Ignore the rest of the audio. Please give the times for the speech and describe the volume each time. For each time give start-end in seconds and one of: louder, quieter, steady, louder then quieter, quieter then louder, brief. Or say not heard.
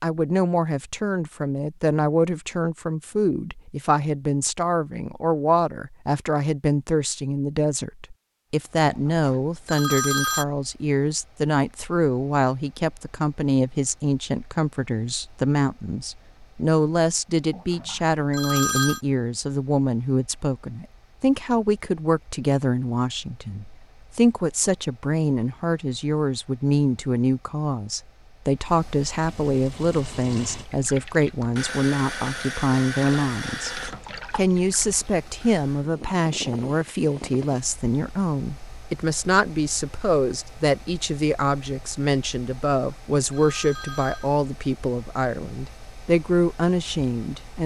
0.0-47.6 steady.